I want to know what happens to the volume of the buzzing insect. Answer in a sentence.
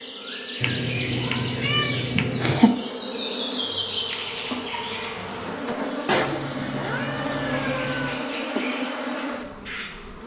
The volume of the buzzing insect goes up.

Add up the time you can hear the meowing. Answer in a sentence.
You can hear the meowing for 4 seconds altogether.